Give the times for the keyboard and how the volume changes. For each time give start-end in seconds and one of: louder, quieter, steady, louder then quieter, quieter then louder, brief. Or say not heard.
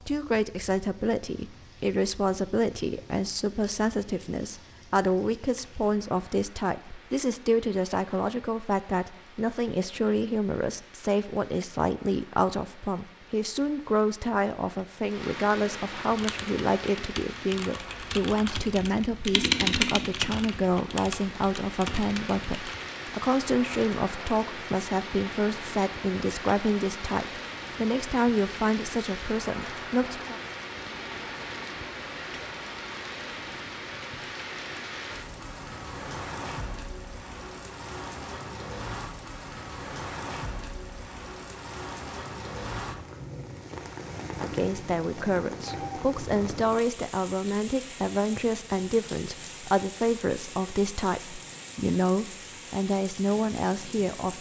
16.1-22.9 louder then quieter.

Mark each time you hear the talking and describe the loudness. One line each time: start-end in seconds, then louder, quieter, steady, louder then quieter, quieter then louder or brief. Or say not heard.
0.1-30.4 steady
44.4-54.3 steady.